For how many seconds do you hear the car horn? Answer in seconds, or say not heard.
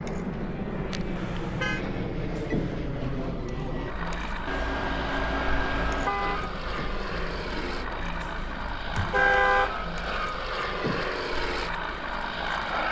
4 s.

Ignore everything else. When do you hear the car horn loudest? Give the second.
9 s.